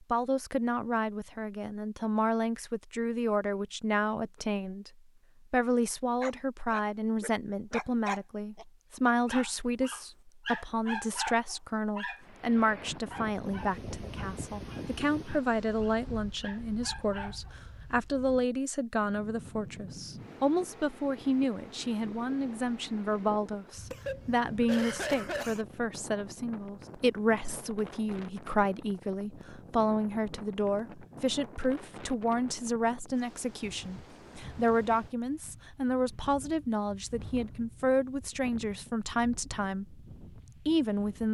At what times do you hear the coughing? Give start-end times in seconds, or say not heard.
23.9-25.6.